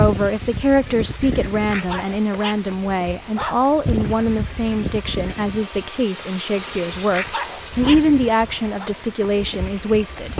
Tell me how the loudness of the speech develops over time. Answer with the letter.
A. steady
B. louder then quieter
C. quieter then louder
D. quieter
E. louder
A.